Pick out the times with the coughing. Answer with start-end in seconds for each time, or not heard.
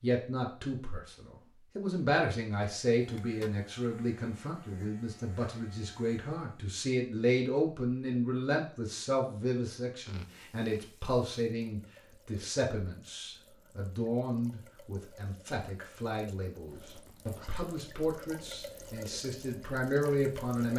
not heard.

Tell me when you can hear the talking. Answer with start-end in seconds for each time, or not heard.
0.0-20.7.